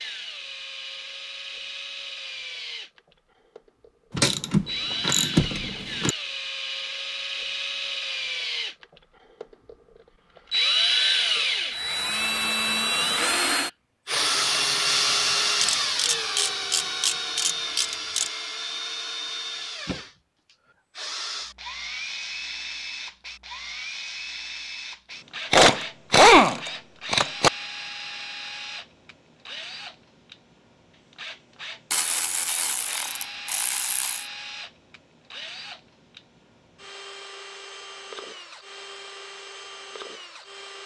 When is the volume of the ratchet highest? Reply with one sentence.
The volume of the ratchet peaks at 26 seconds.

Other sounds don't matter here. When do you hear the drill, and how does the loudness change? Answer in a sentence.
The drill can be heard from 0.0 to 40.8 s, getting louder then quieter.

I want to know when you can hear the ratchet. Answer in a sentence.
The ratchet can be heard from 4.2 to 6.2 s, from 15.6 to 18.3 s, from 25.5 to 27.5 s and from 31.9 to 34.2 s.